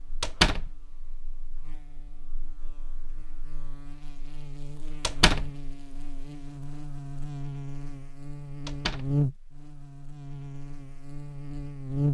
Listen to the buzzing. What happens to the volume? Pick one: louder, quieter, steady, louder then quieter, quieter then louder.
louder then quieter.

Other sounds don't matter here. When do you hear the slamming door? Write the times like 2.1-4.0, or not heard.
0.2-0.7, 5.0-5.5, 8.7-9.1.